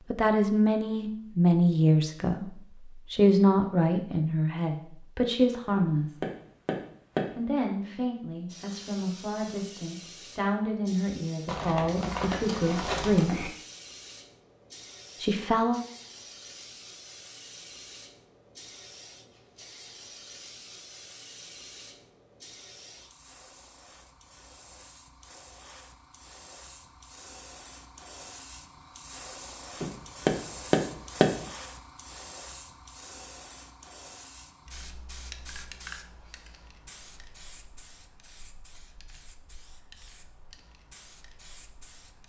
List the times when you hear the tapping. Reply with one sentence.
You can hear the tapping from 5.8 to 7.3 s and from 29.8 to 31.4 s.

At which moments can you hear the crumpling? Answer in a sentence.
The crumpling can be heard from 11.4 to 13.5 s.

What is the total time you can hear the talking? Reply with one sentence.
The talking can be heard for 13 seconds in total.